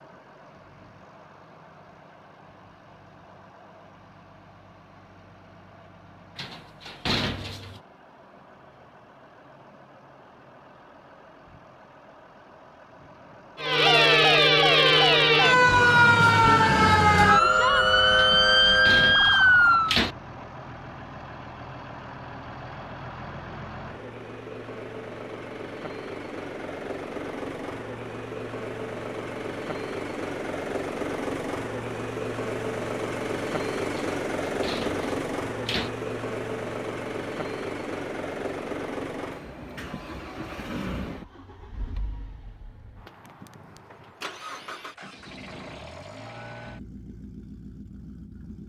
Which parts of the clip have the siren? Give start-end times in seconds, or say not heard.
13.6-19.9.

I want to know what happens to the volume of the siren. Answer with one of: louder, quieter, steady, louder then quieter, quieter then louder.
steady.